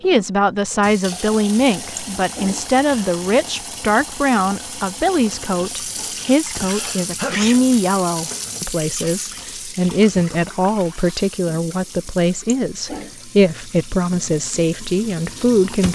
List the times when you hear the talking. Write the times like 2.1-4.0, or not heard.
0.0-15.8.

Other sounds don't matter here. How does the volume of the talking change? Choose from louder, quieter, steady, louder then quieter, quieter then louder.
steady.